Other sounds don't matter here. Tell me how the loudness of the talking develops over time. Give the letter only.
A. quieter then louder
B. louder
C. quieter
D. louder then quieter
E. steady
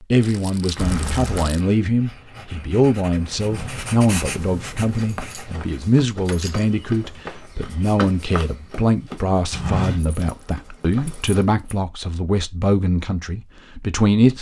E.